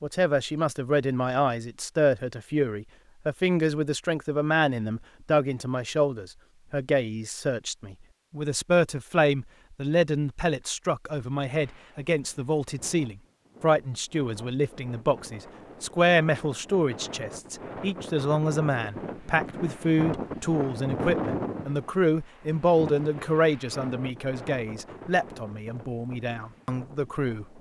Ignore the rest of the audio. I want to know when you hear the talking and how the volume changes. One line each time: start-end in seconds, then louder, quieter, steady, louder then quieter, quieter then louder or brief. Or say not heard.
0.0-27.4 steady.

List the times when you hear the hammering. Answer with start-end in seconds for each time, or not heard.
not heard.